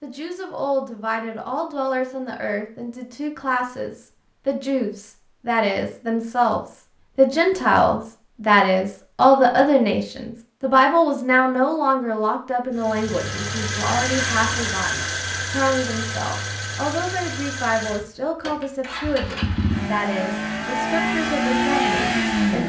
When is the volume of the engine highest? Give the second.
22 s.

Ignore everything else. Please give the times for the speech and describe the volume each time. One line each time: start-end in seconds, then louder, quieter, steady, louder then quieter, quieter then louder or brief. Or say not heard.
0.0-22.6 louder then quieter.